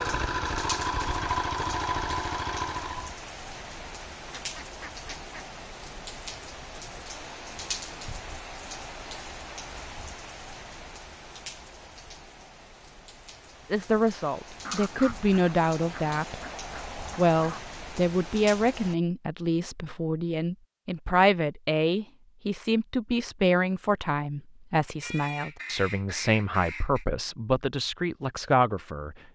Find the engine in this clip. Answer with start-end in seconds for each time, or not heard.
0.0-3.1.